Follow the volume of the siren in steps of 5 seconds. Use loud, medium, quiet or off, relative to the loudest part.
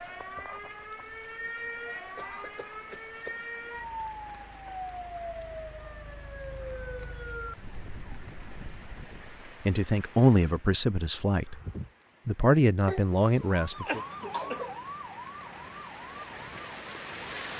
loud, loud, loud, medium.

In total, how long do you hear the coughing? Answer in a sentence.
You can hear the coughing for 3 seconds altogether.